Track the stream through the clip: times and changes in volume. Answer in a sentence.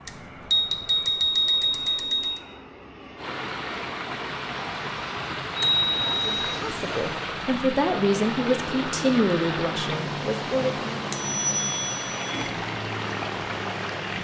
You can hear the stream from 3.1 to 14.1 s, at a steady volume.